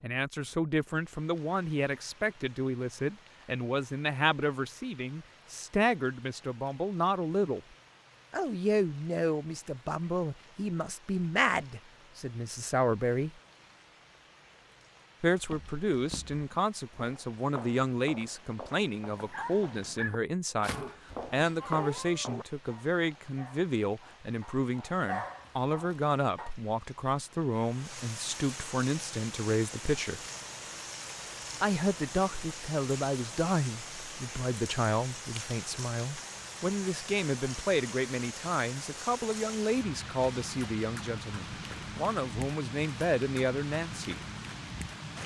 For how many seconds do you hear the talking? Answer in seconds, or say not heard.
40 s.